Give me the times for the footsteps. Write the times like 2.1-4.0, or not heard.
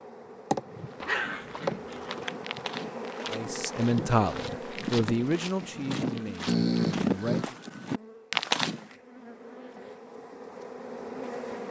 0.7-8.9.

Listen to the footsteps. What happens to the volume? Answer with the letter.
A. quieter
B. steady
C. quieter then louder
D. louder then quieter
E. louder
E.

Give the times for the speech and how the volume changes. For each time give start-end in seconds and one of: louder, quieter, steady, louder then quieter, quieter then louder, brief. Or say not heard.
3.3-7.5 quieter.